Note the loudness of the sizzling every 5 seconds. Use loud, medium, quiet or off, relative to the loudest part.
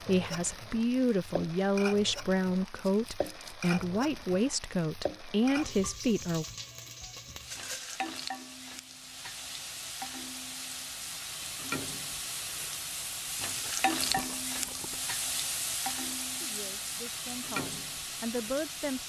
medium, medium, loud, loud.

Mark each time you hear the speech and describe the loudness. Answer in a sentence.
You can hear the speech from 0.1 to 6.5 s, at a steady volume; and briefly from 16.4 to 19.0 s.